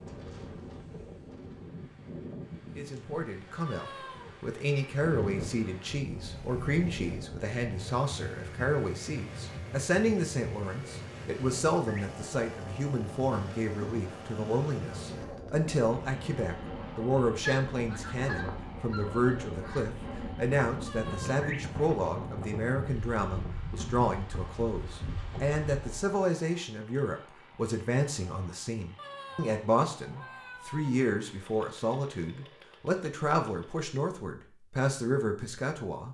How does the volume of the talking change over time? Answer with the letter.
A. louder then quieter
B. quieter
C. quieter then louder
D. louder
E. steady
E.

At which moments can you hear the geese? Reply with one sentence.
The geese can be heard from 17.4 to 20.0 s.